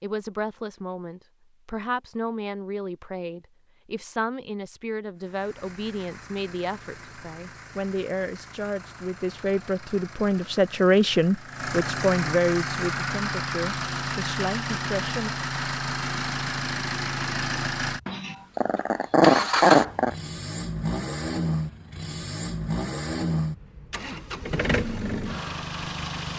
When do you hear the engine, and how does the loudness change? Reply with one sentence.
The engine can be heard from 5.2 to 26.3 s, getting louder.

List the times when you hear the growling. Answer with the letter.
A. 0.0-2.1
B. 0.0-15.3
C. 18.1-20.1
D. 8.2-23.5
C.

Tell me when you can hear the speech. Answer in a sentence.
You can hear the speech from 0.0 to 15.3 s.